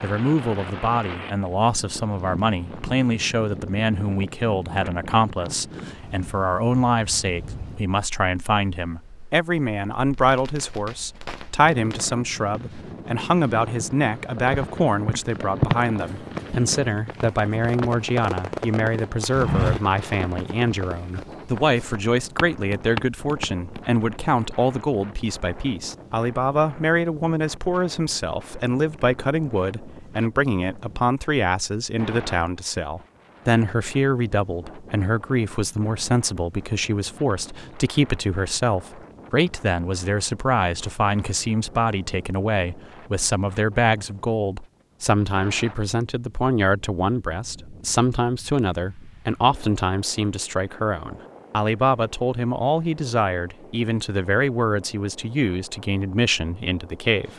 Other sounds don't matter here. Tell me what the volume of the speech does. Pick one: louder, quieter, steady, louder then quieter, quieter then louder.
steady.